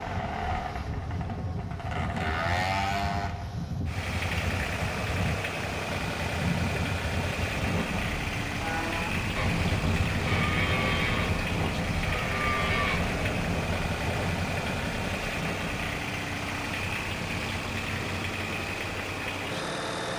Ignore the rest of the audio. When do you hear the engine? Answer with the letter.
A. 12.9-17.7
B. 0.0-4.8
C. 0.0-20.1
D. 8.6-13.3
C.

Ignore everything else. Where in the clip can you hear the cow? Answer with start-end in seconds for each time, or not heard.
8.6-13.3.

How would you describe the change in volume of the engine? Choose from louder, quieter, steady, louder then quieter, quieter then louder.
steady.